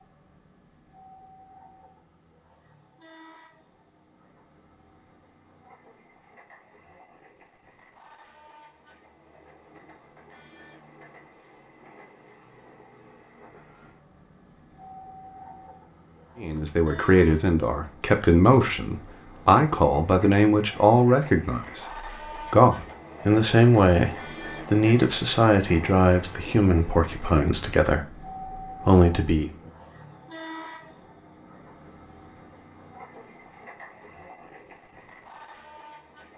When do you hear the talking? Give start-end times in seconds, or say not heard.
16.4-29.5.